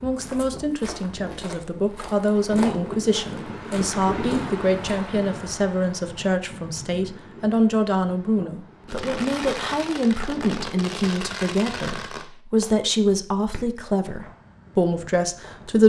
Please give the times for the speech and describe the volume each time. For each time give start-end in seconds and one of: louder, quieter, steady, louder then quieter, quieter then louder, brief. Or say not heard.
0.0-15.8 steady.